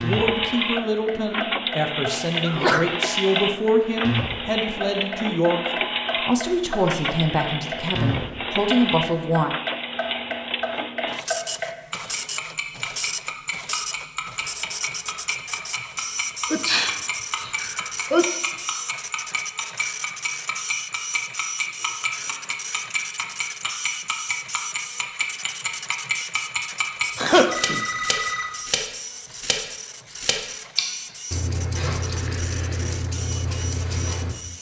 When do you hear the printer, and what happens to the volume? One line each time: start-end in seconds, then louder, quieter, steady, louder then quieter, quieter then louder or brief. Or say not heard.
0.0-34.5 quieter.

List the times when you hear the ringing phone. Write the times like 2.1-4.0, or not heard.
27.4-28.5.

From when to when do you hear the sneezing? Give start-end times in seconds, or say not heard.
2.4-2.9, 16.5-18.2, 27.1-27.9.